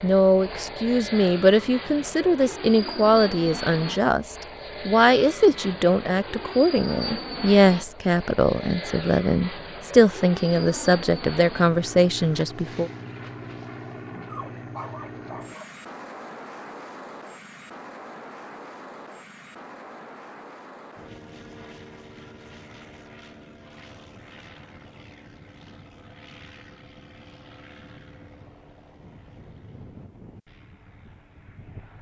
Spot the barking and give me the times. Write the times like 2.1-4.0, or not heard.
14.2-15.8.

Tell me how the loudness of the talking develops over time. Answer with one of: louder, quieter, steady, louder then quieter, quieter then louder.
steady.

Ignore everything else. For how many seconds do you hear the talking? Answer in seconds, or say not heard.
13 s.